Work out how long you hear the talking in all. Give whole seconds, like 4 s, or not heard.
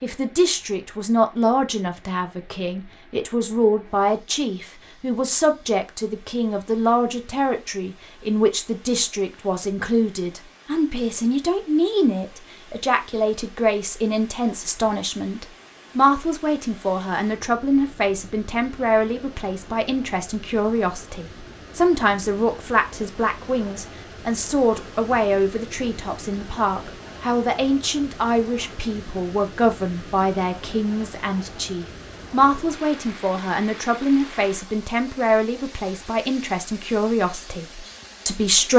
39 s.